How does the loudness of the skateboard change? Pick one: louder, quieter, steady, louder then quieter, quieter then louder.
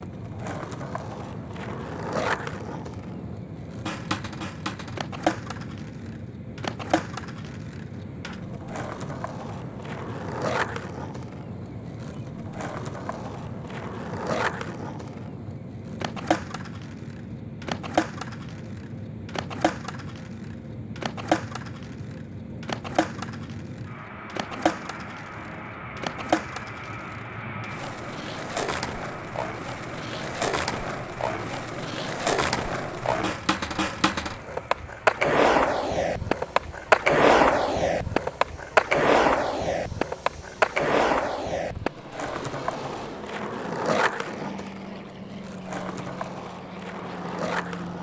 louder.